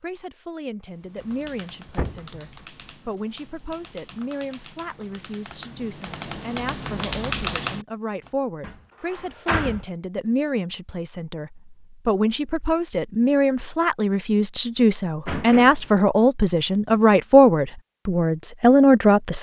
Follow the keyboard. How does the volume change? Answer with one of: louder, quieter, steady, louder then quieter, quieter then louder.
louder.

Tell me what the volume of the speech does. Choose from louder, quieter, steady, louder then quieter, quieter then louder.
louder.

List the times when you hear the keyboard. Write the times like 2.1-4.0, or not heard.
0.8-8.3.